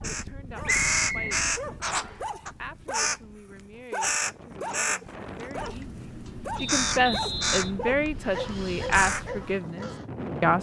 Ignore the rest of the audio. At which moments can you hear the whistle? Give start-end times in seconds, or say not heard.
0.7-2.2, 6.5-7.8.